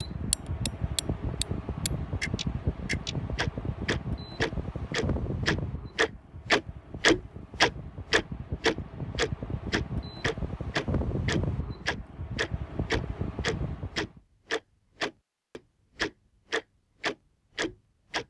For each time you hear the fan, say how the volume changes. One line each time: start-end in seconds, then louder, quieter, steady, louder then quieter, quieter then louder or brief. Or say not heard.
0.0-14.2 quieter then louder.